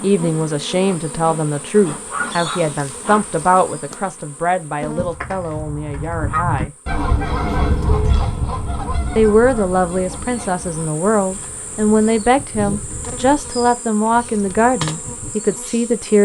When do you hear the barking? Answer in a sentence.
You can hear the barking from 1.9 to 3.5 s.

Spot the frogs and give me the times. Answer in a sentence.
The frogs can't be heard in this clip.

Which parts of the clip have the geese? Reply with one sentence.
You can hear the geese from 5.0 to 15.3 s.